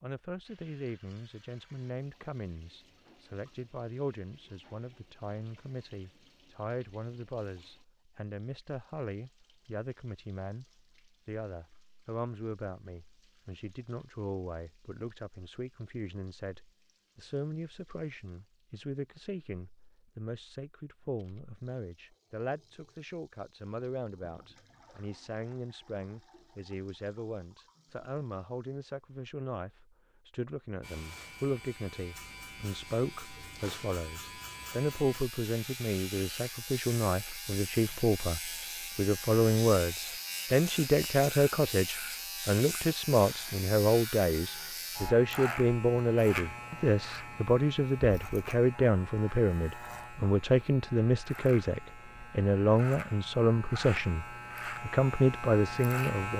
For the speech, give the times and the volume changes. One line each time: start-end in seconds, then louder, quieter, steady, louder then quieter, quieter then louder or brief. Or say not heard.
0.0-56.3 louder.